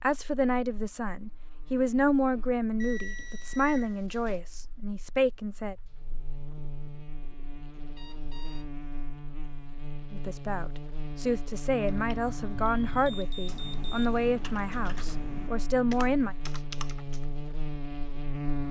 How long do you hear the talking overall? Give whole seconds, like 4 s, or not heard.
12 s.